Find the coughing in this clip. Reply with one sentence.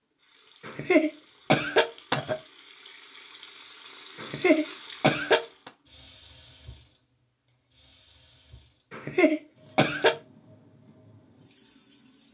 The coughing can be heard from 0.7 to 2.4 s, from 4.2 to 5.7 s and from 8.9 to 10.2 s.